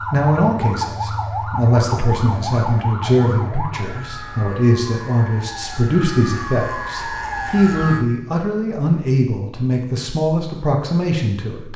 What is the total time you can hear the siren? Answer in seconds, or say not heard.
8 s.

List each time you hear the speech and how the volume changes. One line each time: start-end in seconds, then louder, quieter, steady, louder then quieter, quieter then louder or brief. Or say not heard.
0.1-11.7 steady.